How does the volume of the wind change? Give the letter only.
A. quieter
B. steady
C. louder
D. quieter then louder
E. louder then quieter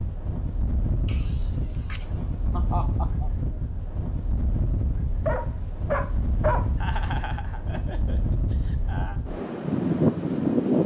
C.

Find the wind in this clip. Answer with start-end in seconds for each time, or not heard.
0.0-10.8.